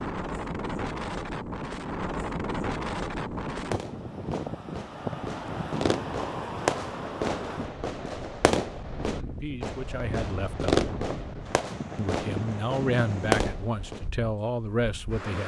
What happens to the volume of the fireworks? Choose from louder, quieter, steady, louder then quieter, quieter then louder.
louder.